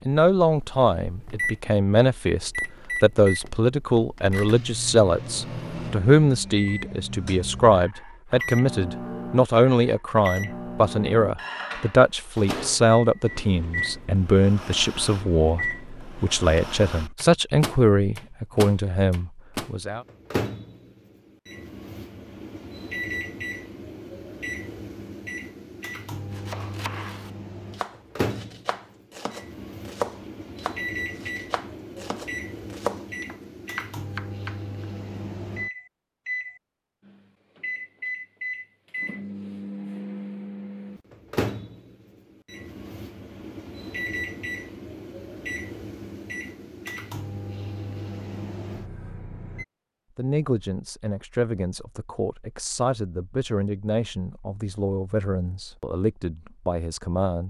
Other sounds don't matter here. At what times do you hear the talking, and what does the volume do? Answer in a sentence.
The talking can be heard from 0.1 to 20.1 s, at a steady volume; and from 50.1 to 57.4 s, at a steady volume.